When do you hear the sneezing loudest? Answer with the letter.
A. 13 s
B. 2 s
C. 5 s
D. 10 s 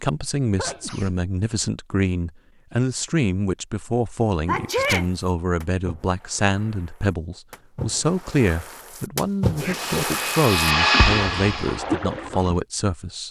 C.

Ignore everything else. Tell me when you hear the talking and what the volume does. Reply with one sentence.
You can hear the talking from 0.0 to 13.2 s, at a steady volume.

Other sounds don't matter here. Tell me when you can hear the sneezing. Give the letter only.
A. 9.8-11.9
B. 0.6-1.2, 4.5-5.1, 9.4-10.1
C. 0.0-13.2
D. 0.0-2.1
B.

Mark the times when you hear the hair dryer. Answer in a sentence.
The hair dryer can be heard from 9.8 to 11.9 s.